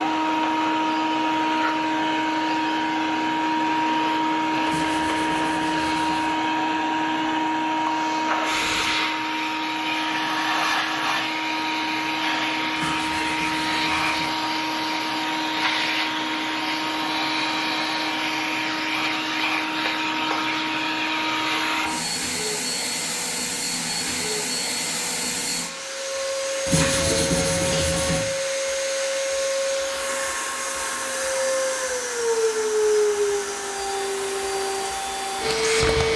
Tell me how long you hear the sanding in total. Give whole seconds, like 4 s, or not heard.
5 s.